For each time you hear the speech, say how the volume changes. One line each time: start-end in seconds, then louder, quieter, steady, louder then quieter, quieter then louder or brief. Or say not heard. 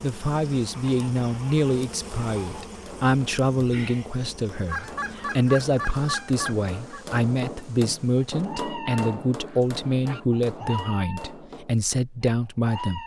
0.0-13.0 steady.